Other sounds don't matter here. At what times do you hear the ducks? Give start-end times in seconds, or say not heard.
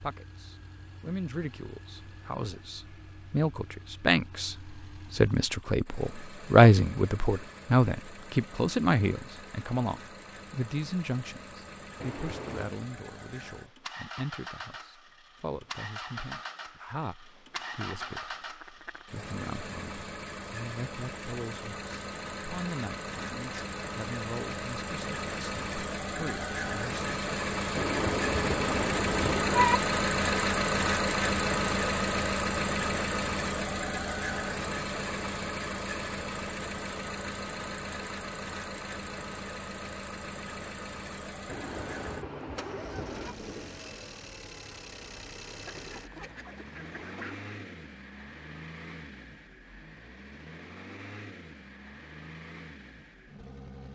17.5-19.1, 45.6-47.5.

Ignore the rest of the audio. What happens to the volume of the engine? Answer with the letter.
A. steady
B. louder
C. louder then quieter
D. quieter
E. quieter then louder
C.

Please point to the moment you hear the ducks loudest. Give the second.
47 s.